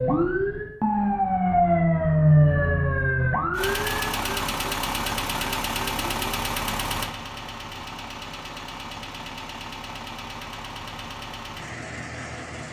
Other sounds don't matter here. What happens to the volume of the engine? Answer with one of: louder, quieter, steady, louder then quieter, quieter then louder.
quieter.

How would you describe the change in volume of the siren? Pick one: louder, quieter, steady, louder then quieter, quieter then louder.
louder then quieter.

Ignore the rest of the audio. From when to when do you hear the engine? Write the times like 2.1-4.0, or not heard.
3.5-12.6.